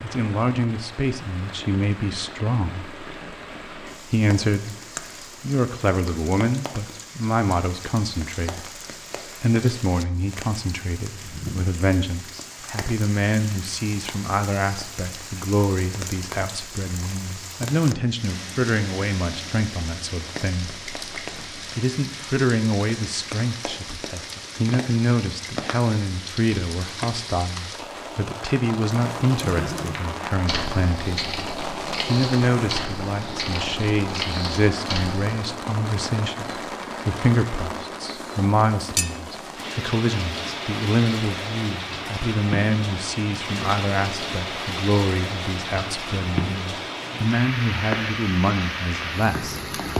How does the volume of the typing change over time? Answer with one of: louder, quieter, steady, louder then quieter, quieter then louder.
steady.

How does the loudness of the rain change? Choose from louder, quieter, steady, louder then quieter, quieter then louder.
louder.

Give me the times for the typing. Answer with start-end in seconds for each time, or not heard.
28.9-35.4.